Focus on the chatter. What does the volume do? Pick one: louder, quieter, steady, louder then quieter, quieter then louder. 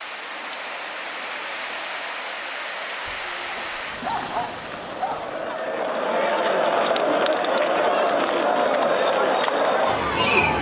louder.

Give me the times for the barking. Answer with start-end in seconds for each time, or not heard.
3.0-5.5.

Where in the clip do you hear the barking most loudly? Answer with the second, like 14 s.
4 s.